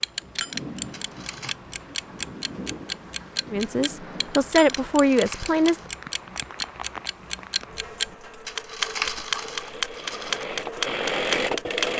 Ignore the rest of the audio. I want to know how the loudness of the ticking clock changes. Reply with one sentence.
The volume of the ticking clock goes up.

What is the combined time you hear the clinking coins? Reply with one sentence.
You can hear the clinking coins for 4 seconds altogether.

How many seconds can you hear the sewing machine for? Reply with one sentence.
The sewing machine can be heard for 3 seconds in total.